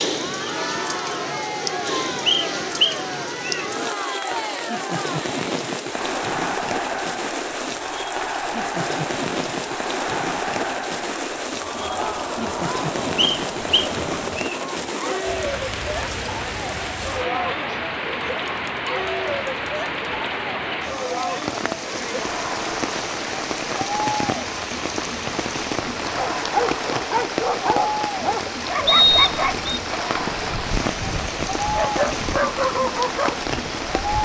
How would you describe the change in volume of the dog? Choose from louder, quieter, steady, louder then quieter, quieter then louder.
quieter then louder.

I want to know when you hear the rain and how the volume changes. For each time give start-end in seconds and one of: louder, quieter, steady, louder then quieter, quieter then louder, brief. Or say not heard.
0.0-34.2 steady.